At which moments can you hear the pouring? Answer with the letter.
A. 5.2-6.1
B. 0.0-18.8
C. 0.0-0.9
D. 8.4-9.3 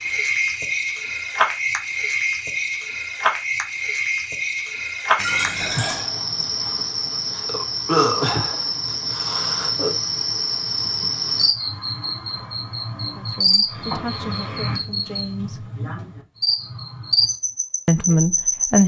A.